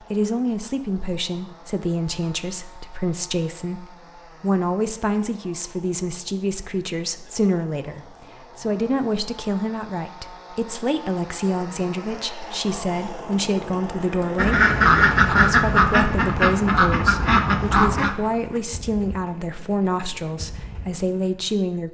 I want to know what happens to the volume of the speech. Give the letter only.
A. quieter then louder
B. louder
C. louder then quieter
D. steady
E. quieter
D.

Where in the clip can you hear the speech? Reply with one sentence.
You can hear the speech from 0.1 to 21.8 s.